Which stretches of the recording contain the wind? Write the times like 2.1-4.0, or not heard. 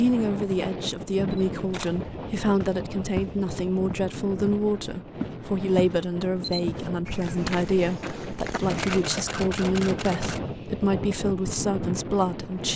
0.0-12.7.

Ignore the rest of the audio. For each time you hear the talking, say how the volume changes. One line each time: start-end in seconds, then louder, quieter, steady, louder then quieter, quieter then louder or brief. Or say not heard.
0.0-12.7 steady.